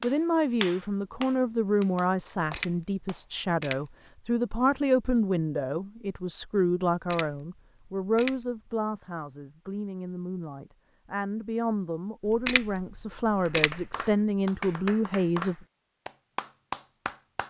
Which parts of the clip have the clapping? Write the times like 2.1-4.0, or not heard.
0.0-3.2, 13.4-17.4.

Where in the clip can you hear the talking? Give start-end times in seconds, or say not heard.
0.0-15.6.